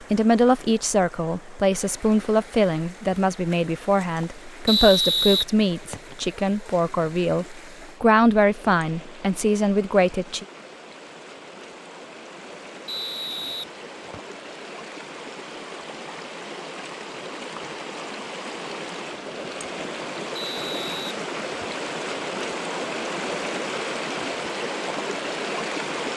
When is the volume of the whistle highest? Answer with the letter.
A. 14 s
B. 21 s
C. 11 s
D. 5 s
D.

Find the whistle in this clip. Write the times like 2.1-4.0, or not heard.
4.7-6.2, 12.8-14.2, 20.4-21.9.